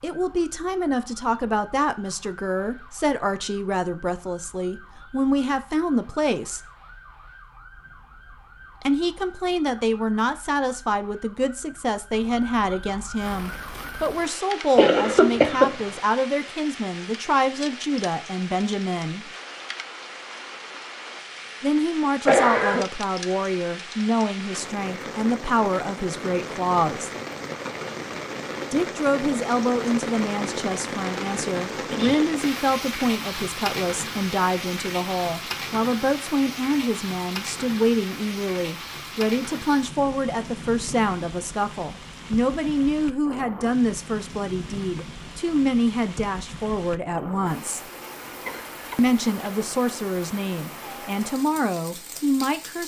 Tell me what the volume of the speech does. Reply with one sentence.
The loudness of the speech stays about the same.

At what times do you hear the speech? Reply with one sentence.
You can hear the speech from 0.0 to 6.6 s, from 8.8 to 19.3 s, from 21.6 to 27.1 s, from 28.7 to 47.8 s and from 49.0 to 52.8 s.